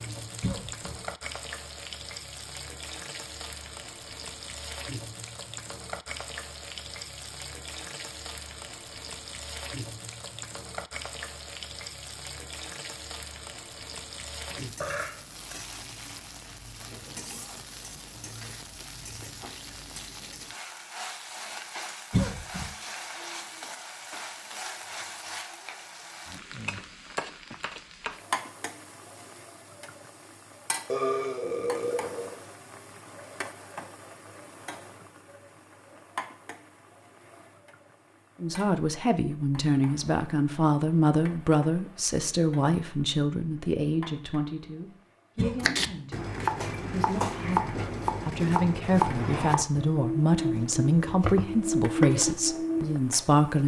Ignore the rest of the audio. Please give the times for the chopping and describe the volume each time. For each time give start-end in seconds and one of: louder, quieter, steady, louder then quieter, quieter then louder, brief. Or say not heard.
45.6-53.0 steady.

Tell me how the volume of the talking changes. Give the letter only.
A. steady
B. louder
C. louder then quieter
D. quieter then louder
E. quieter
D.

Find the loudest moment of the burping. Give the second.
31 s.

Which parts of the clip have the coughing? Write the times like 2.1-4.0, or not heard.
0.4-1.0, 22.1-22.7, 45.4-46.0.